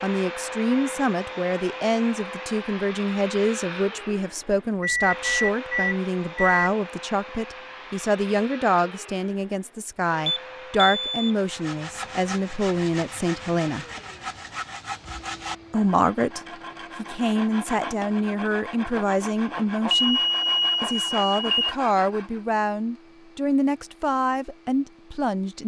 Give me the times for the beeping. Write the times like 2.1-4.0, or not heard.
4.8-6.7, 10.2-11.3, 19.9-21.8.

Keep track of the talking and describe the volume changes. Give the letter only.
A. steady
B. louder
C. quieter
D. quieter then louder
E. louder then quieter
A.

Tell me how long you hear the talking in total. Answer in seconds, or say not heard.
23 s.